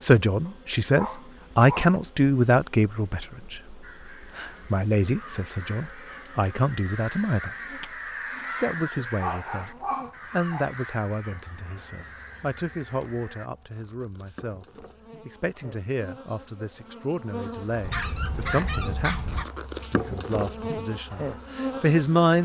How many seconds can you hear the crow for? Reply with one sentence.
The crow can be heard for 10 seconds in total.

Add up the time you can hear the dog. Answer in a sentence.
The dog can be heard for 5 seconds in total.